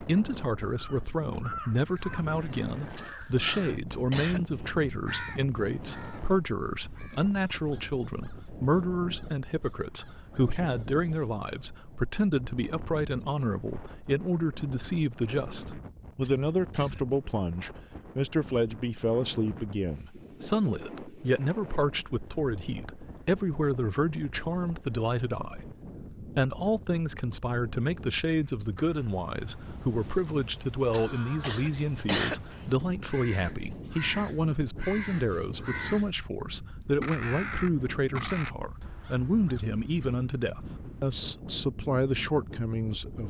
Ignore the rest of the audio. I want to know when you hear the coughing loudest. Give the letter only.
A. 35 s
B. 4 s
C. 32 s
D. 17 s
C.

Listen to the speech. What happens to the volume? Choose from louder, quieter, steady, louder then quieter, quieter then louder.
steady.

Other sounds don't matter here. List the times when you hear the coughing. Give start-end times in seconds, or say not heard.
3.0-4.7, 16.2-17.0, 30.9-32.6.